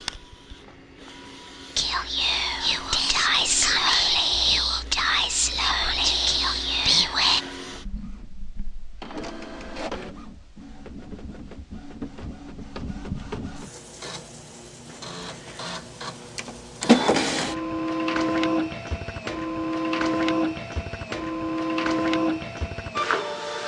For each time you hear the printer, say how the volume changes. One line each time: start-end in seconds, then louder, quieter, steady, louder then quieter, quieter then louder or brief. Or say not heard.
0.0-23.6 louder.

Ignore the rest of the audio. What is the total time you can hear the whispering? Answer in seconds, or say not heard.
6 s.